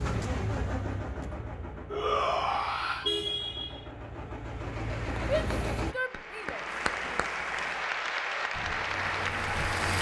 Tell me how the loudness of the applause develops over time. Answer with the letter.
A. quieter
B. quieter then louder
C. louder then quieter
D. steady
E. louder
E.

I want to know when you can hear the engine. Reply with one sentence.
The engine can be heard from 0.0 to 6.0 s and from 8.5 to 9.9 s.